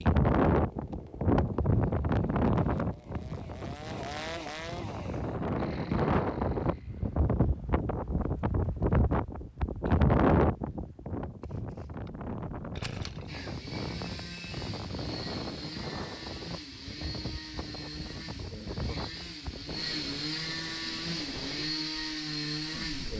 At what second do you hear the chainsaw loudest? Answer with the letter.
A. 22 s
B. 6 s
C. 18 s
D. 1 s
A.